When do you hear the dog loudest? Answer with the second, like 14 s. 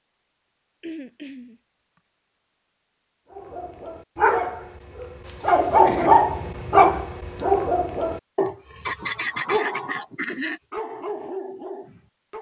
6 s.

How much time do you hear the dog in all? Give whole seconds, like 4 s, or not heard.
8 s.